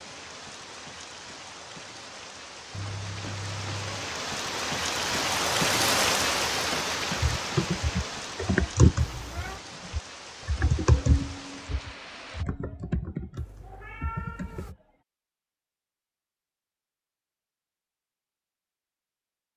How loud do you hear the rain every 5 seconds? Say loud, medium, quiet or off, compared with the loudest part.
medium, loud, quiet, off.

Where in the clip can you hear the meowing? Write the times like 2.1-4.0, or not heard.
2.7-4.1, 8.9-9.6, 13.3-14.8.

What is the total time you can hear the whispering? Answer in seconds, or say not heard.
not heard.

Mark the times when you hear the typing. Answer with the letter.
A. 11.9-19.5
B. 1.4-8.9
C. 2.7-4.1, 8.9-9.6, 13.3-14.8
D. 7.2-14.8
D.